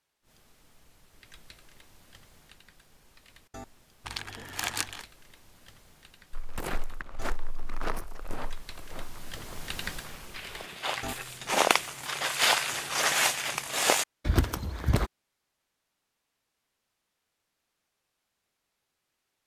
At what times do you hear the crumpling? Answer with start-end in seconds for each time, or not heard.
4.0-5.0.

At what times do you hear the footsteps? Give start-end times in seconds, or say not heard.
6.3-15.1.